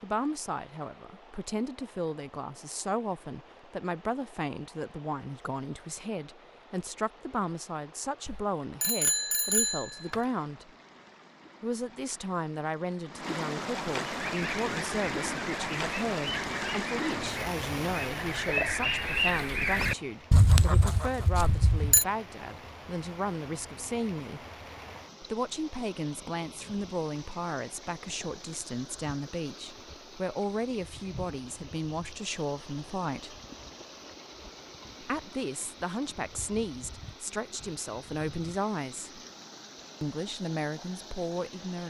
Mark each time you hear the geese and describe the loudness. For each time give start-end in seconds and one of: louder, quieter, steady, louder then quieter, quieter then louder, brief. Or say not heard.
14.0-22.1 louder.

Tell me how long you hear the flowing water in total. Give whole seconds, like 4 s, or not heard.
42 s.